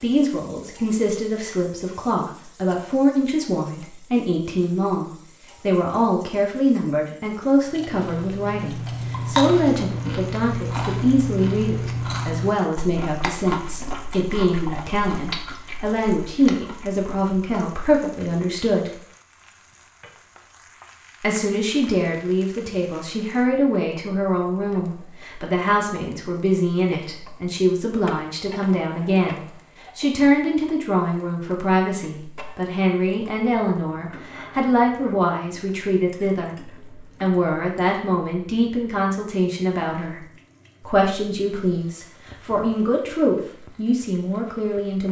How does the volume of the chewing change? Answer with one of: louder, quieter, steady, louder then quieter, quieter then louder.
quieter.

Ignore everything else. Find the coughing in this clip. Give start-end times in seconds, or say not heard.
not heard.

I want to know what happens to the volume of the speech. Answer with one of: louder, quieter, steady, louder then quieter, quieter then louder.
steady.